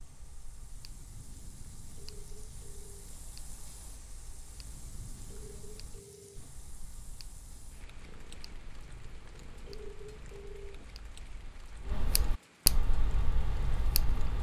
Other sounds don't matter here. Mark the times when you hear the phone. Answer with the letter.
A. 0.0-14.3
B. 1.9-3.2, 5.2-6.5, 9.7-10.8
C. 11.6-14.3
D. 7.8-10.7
B.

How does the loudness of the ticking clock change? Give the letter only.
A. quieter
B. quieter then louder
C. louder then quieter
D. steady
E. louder
E.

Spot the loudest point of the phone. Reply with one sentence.
The loudest moment of the phone is at 10 seconds.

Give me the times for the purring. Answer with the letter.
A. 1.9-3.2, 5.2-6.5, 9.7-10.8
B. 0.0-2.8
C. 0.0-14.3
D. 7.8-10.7
D.